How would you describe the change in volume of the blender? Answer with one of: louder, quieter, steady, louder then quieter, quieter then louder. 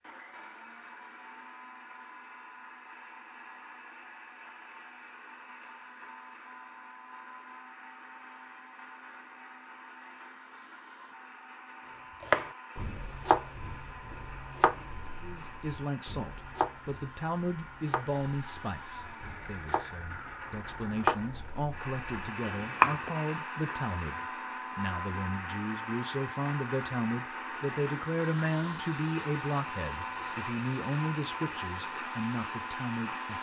louder.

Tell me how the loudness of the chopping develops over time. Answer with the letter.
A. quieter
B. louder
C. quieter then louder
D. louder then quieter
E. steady
C.